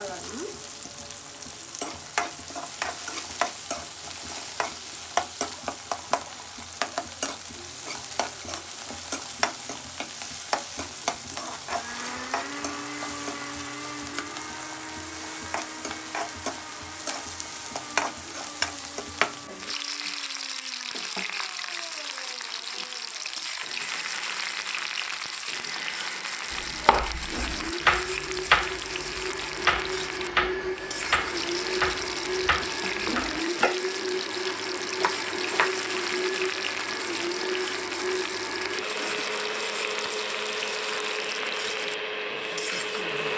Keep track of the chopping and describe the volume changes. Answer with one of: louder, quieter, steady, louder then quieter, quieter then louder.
quieter.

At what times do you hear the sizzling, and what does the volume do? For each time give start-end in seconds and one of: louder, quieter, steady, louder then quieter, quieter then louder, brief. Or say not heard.
0.0-43.3 steady.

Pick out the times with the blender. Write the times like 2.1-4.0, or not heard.
11.7-43.3.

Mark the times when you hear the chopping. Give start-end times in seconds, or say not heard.
26.5-35.8.